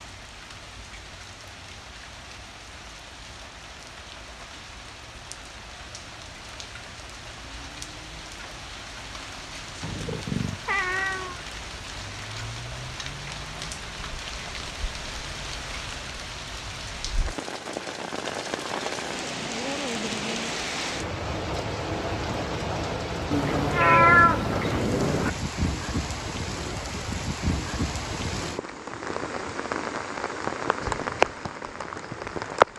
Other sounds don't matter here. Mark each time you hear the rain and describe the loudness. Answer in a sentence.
The rain can be heard from 0.0 to 32.7 s, getting louder.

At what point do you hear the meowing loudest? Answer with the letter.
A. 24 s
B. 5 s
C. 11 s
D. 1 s
A.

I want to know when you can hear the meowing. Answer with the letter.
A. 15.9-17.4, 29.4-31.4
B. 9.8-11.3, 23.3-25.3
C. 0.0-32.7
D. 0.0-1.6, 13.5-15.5
B.